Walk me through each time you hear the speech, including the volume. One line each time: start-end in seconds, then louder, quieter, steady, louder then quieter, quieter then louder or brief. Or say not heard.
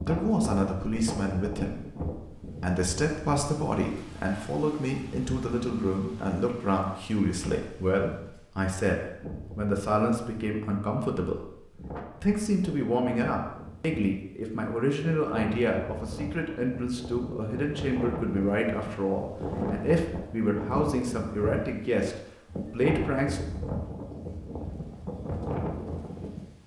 0.0-23.4 steady.